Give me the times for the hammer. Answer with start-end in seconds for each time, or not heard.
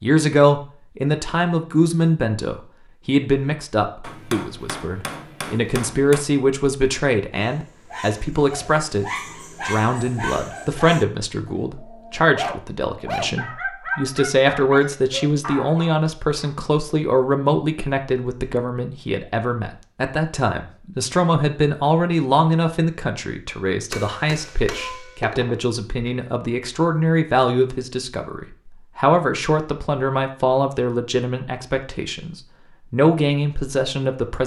4.0-6.2, 23.9-25.6.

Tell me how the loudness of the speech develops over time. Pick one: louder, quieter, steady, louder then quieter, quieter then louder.
steady.